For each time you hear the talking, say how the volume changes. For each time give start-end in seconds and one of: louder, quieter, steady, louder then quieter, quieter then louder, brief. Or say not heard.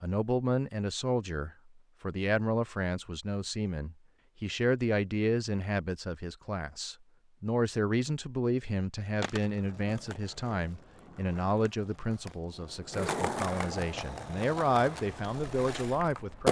0.0-16.4 steady.